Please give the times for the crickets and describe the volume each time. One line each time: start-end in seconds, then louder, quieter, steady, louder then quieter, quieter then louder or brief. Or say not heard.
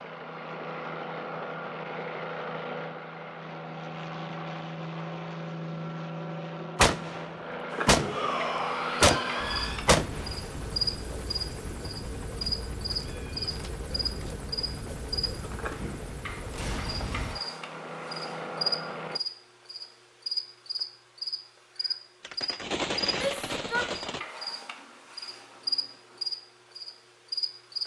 7.7-27.8 steady.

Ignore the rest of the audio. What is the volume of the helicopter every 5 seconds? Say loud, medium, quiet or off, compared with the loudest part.
loud, loud, loud, loud, off, off.